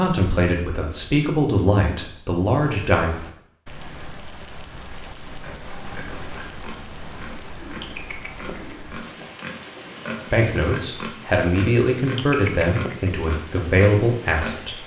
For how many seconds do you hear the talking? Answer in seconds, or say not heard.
8 s.